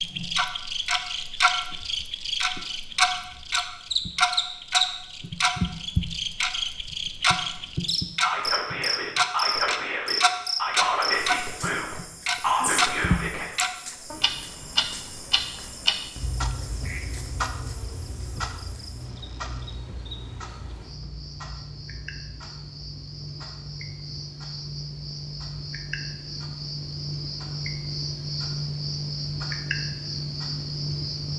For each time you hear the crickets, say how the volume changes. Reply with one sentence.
The crickets can be heard from 0.0 to 31.3 s, getting quieter then louder.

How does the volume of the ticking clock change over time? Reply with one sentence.
The loudness of the ticking clock goes down.